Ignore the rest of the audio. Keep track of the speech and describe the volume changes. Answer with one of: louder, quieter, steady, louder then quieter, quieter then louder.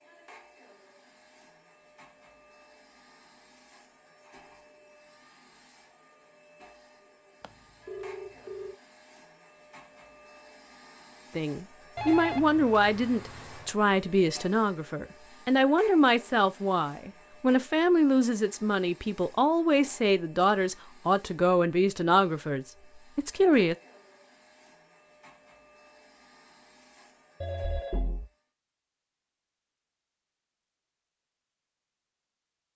steady.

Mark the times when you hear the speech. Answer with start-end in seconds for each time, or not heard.
11.3-23.8.